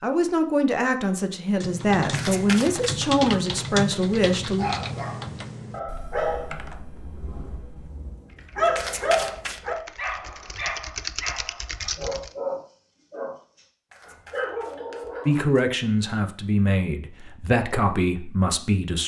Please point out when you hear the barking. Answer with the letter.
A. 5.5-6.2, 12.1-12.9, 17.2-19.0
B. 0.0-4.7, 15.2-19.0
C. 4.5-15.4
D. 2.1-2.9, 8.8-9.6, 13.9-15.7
C.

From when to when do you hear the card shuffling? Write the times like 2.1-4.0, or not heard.
2.1-2.9, 8.8-9.6, 13.9-15.7.